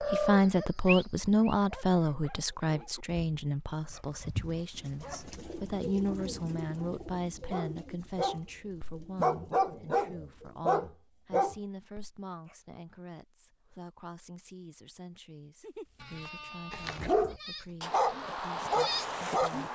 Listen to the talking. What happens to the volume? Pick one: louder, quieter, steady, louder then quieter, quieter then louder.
quieter.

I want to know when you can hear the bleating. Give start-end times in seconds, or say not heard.
0.0-2.1, 15.9-19.7.